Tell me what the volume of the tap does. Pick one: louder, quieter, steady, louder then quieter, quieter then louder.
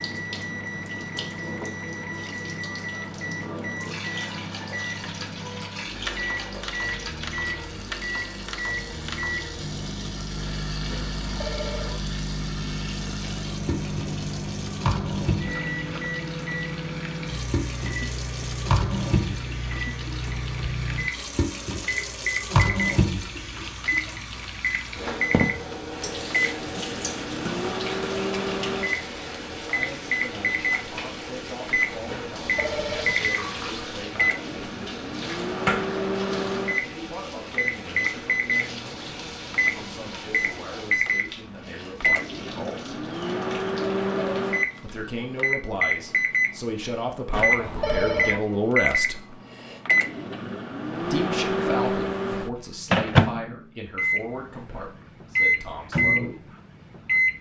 louder then quieter.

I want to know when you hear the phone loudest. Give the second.
48 s.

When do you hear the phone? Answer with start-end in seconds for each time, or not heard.
10.9-12.0, 32.0-33.1, 47.3-48.4.